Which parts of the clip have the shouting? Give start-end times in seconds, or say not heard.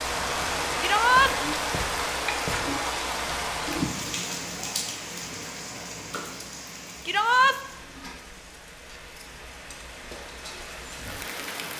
0.8-1.3, 7.0-7.5.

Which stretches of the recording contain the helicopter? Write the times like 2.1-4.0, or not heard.
not heard.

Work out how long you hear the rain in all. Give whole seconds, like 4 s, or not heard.
12 s.